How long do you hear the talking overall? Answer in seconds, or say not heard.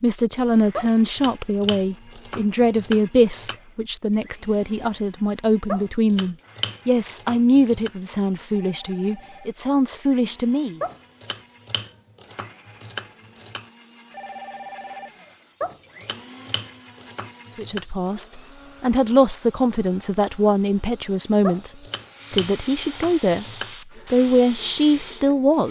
18 s.